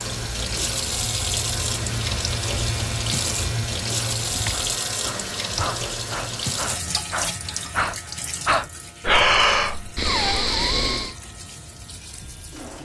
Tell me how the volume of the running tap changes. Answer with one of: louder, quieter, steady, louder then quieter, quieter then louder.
quieter.